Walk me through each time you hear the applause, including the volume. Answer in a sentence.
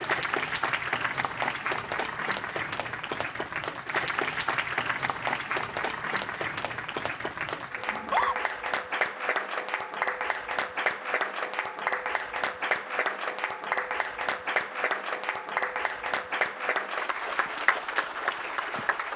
You can hear the applause from 0.0 to 19.1 s, at a steady volume.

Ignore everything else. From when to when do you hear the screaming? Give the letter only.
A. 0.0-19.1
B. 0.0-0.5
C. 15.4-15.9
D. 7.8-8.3
D.